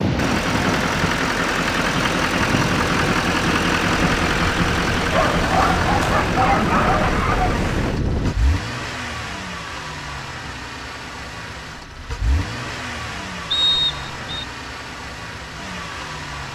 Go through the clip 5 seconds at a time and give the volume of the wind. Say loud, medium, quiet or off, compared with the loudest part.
loud, loud, off, off.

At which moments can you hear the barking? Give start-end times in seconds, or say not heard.
5.1-7.7.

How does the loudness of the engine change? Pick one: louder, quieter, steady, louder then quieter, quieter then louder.
quieter.